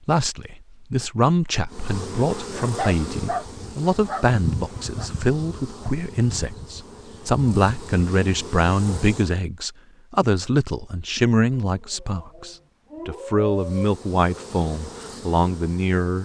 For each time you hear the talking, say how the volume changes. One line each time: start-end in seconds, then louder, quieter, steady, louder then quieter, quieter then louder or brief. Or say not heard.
0.1-16.2 steady.